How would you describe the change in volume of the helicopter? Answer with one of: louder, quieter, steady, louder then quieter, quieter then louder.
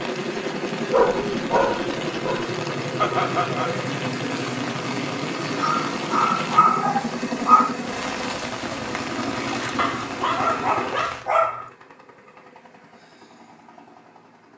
quieter.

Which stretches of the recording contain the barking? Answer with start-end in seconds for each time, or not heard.
0.9-2.5, 5.5-7.8, 9.8-11.7.